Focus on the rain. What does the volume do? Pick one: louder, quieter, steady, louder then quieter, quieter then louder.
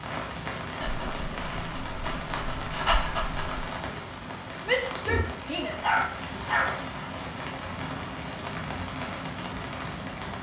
steady.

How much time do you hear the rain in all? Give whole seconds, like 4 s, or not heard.
10 s.